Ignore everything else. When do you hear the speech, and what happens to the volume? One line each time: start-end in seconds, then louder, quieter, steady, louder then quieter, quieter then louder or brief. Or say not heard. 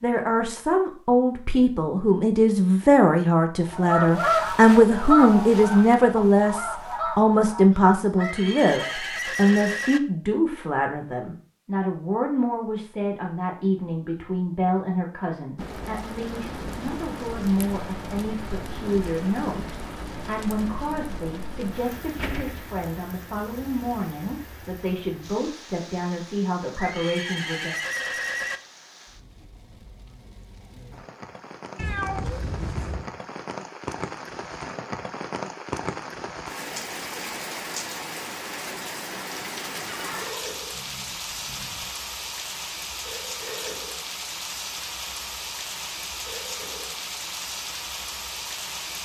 0.0-27.8 quieter.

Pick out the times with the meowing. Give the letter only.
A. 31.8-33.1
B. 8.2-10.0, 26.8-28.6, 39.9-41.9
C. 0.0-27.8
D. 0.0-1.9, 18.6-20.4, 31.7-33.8
A.